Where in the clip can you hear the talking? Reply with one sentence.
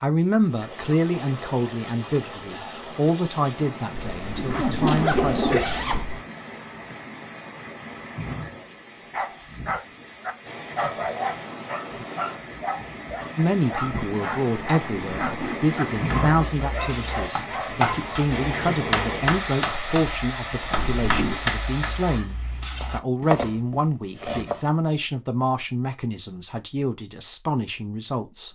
You can hear the talking from 0.0 to 5.7 s and from 13.3 to 28.5 s.